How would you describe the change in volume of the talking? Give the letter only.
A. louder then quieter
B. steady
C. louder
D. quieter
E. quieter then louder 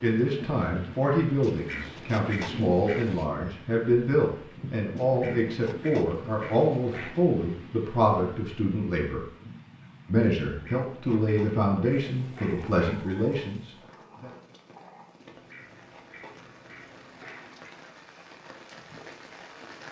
B.